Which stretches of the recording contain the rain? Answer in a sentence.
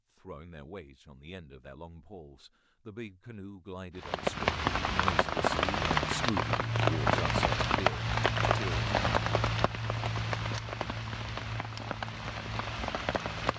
You can hear the rain from 4.0 to 13.5 s.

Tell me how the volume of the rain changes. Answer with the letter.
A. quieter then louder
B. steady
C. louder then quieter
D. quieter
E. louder
D.